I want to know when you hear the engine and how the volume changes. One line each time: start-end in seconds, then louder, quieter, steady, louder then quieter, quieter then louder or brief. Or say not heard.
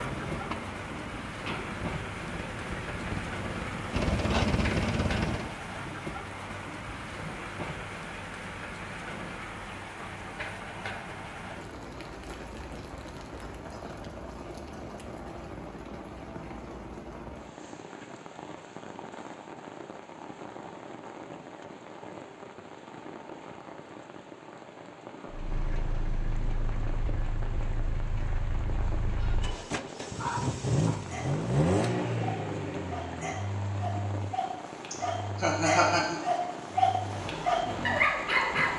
0.0-5.5 louder
25.3-38.7 louder then quieter.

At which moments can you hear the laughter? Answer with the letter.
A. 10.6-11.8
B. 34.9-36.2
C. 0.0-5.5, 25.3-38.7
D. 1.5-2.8
B.